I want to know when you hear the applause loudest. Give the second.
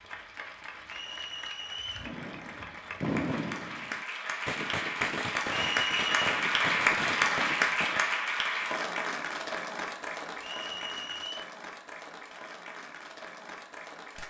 7 s.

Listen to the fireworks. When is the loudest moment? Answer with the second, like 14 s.
3 s.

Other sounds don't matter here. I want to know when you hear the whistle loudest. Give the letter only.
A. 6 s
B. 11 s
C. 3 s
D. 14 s
A.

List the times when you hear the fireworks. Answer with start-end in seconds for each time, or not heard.
2.0-8.1.